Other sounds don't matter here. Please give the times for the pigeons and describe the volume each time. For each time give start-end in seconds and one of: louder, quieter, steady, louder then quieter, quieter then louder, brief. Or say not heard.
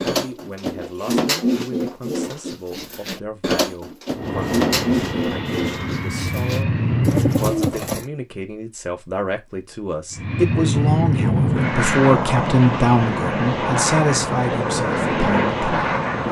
0.0-8.1 quieter then louder.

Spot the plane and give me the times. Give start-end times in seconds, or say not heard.
4.2-7.5, 10.1-16.2.